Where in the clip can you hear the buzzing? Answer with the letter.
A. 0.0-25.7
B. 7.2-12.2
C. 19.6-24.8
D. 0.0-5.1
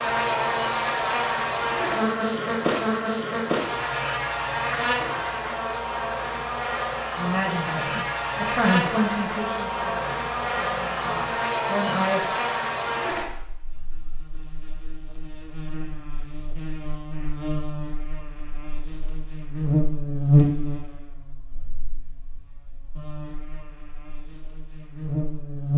A.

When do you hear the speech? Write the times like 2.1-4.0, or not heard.
7.2-12.2.